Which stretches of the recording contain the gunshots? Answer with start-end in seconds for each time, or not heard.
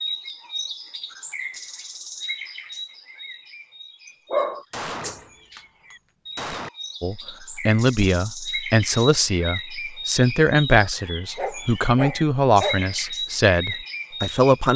4.7-6.7.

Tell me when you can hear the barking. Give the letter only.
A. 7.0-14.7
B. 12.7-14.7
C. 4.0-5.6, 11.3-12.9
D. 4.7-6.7
C.